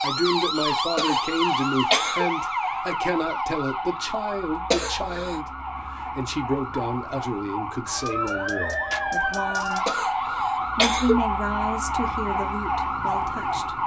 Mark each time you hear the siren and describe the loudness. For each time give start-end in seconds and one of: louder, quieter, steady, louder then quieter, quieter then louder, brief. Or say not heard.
0.0-13.8 quieter then louder.